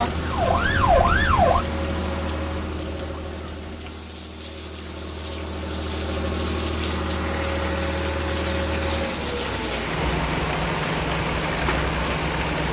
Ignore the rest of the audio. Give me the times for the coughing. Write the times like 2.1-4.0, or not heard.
not heard.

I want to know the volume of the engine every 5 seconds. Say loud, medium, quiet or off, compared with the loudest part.
medium, loud, loud.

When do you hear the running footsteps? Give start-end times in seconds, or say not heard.
not heard.